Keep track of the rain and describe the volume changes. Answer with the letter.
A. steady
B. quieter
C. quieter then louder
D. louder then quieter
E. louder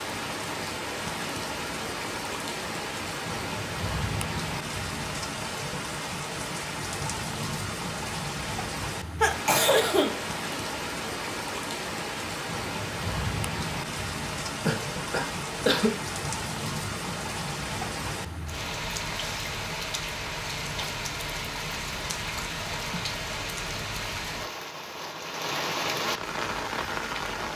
A.